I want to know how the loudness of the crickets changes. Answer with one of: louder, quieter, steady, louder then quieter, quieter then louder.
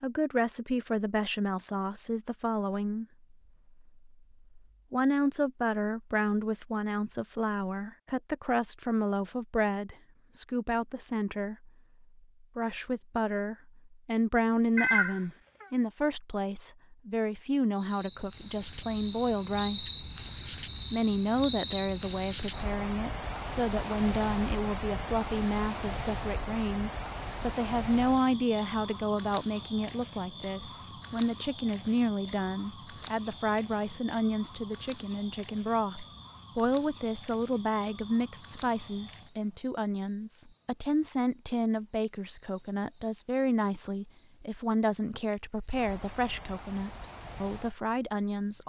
quieter.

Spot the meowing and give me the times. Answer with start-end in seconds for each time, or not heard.
14.8-15.7.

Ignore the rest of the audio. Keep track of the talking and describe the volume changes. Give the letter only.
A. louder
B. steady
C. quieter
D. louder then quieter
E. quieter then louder
B.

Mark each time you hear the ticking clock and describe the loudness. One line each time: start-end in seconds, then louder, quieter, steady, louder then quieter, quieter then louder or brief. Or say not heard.
not heard.